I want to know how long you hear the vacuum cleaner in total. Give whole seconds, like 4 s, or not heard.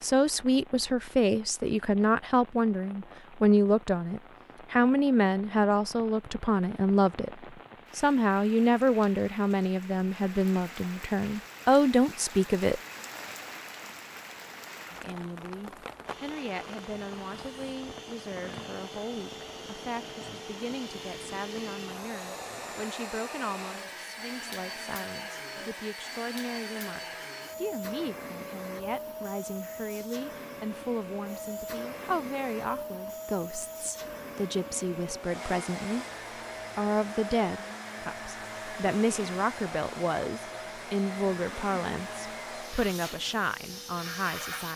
29 s.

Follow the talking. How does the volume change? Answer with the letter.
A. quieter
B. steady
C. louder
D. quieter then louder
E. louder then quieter
D.